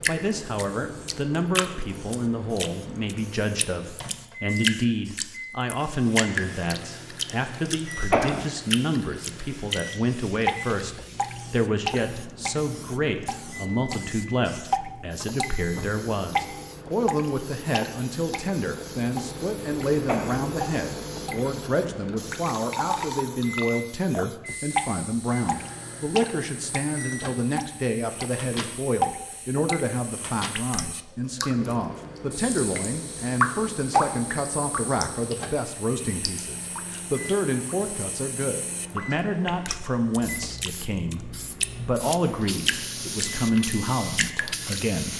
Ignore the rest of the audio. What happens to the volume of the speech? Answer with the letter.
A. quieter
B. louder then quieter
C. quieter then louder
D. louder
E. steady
E.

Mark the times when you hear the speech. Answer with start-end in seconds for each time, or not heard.
0.1-45.1.